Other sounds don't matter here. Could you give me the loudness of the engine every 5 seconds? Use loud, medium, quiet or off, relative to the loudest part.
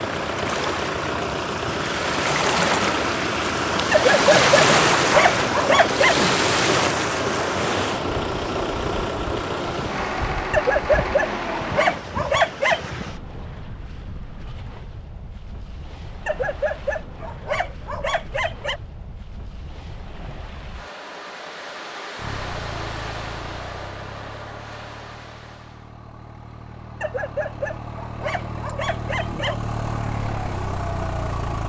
loud, loud, loud, off, medium, medium, loud.